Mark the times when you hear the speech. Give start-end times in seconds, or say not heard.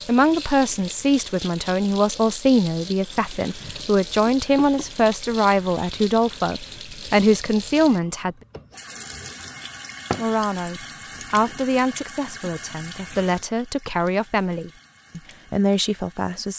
0.1-8.3, 10.2-16.5.